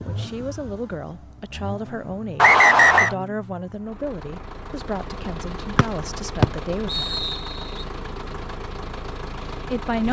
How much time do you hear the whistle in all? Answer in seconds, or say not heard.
3 s.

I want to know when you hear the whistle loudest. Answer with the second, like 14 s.
3 s.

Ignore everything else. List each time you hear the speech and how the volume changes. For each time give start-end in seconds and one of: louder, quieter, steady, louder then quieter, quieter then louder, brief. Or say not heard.
0.1-7.2 steady
9.5-10.0 brief.